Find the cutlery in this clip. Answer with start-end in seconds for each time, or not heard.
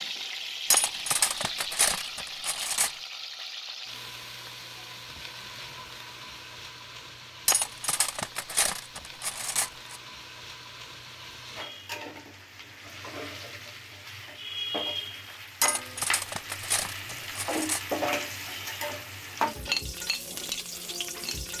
0.7-3.0, 7.5-10.0, 15.6-17.9.